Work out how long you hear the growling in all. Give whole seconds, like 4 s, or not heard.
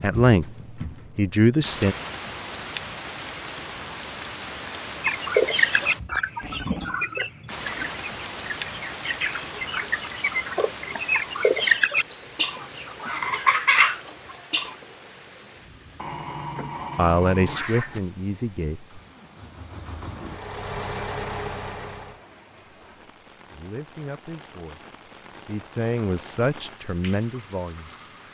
3 s.